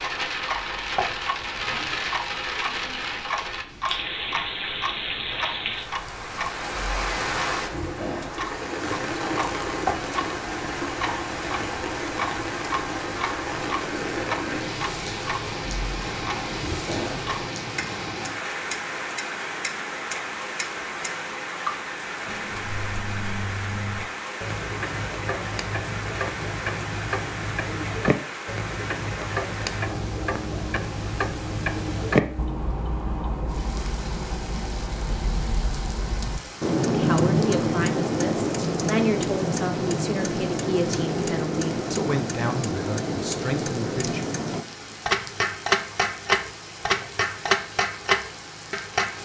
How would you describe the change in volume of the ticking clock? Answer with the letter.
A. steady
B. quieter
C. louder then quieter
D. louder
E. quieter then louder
D.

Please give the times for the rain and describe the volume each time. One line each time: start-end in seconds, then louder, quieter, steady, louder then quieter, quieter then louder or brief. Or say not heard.
0.0-49.2 quieter.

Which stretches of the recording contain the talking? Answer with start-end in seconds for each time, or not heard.
36.9-44.2.